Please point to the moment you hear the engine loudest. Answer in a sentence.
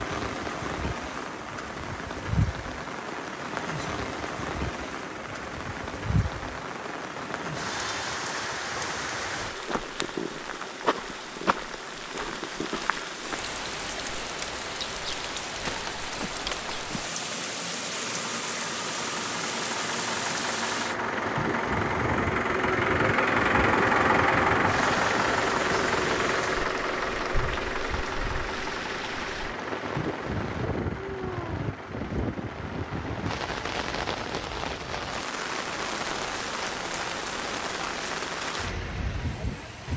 The volume of the engine peaks at 24 seconds.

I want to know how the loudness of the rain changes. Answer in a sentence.
The loudness of the rain stays about the same.